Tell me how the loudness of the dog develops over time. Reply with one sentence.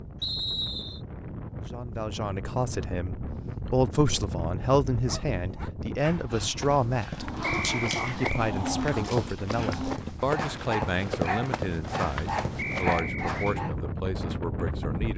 The volume of the dog goes up.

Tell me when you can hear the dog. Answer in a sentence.
The dog can be heard from 4.9 to 13.8 s.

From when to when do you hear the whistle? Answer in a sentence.
You can hear the whistle from 0.2 to 1.0 s, from 7.4 to 8.4 s and from 12.6 to 13.6 s.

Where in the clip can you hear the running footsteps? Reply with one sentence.
You can hear the running footsteps from 6.5 to 13.0 s.